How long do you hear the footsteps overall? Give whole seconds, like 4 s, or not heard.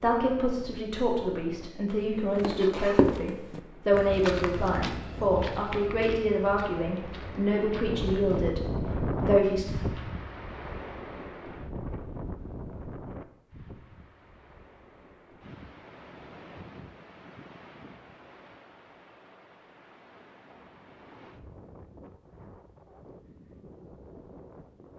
8 s.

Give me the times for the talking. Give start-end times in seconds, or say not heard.
0.0-9.7.